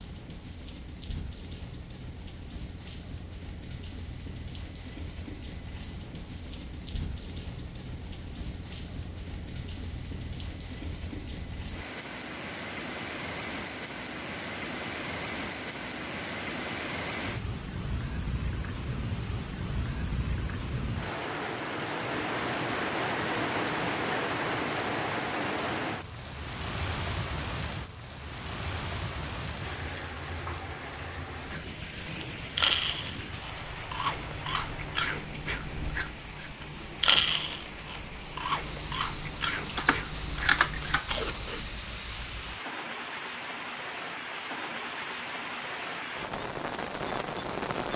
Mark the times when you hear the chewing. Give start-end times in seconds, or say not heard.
31.4-42.0.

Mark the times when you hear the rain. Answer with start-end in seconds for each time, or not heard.
0.0-47.9.